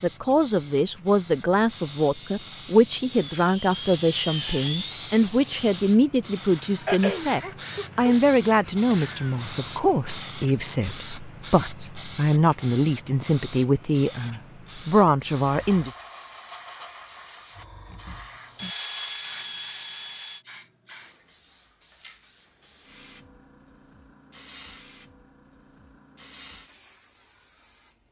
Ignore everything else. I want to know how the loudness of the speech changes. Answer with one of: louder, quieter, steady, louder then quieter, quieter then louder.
steady.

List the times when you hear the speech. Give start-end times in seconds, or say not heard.
0.0-15.9.